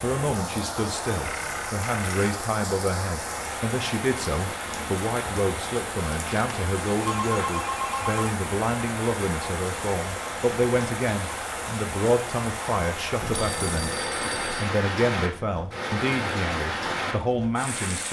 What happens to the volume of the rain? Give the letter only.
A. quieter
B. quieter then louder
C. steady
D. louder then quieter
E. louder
C.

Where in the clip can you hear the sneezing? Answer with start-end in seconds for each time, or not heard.
not heard.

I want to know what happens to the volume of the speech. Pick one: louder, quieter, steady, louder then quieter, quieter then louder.
steady.